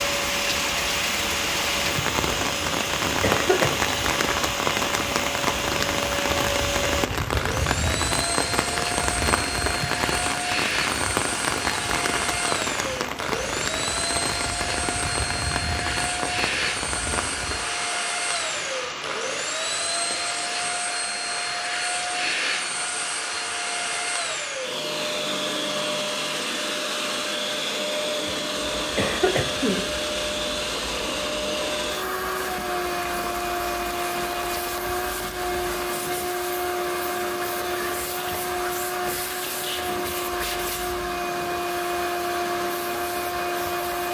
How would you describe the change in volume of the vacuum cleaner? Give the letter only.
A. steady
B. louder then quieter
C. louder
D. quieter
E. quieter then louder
A.